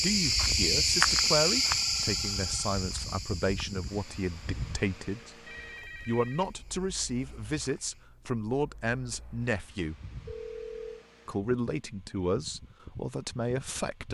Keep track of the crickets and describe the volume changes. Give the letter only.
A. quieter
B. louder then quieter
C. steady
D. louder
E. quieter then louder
A.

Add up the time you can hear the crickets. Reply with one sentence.
You can hear the crickets for 8 seconds altogether.